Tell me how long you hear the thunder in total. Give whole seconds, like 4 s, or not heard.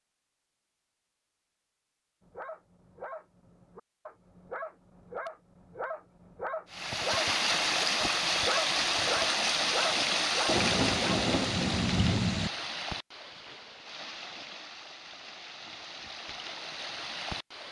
2 s.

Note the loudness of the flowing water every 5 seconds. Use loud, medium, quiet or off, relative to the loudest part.
off, loud, medium, quiet.